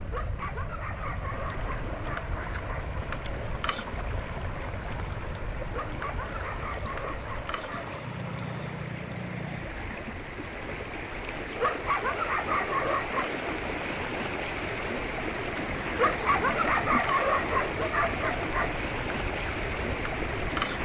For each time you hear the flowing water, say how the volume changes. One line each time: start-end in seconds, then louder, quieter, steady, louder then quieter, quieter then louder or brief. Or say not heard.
0.0-20.8 louder.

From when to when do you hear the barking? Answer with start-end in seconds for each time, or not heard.
0.1-2.9, 5.7-8.0, 11.6-13.3, 15.9-18.8.